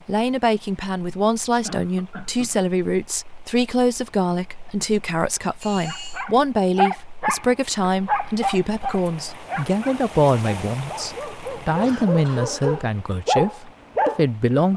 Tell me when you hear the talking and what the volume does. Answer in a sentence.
The talking can be heard from 0.1 to 14.7 s, at a steady volume.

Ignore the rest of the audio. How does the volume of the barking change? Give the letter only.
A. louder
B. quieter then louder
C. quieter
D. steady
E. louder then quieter
B.